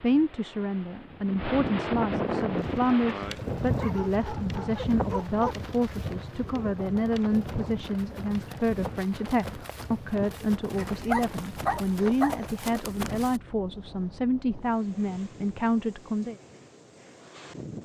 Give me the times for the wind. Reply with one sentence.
The wind can be heard from 0.0 to 17.8 s.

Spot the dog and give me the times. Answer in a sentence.
You can hear the dog from 3.8 to 5.5 s and from 10.7 to 12.4 s.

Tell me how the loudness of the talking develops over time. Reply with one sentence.
The volume of the talking stays about the same.